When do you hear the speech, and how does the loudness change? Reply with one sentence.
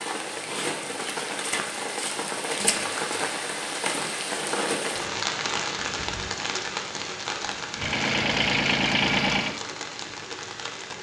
The speech can't be heard in this clip.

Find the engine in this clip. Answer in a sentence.
You can hear the engine from 7.7 to 9.6 s.